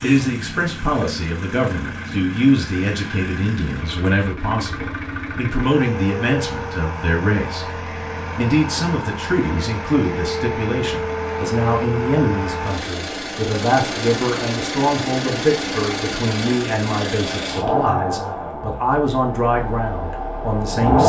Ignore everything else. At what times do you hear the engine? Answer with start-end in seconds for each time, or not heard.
0.0-21.0.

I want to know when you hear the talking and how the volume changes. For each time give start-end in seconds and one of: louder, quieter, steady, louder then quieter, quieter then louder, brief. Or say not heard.
0.0-21.0 steady.